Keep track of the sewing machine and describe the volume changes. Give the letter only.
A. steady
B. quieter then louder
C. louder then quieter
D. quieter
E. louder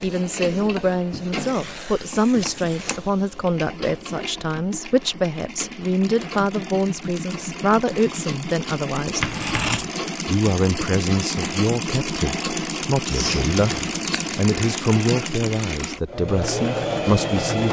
E.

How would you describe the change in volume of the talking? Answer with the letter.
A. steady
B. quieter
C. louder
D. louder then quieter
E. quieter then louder
A.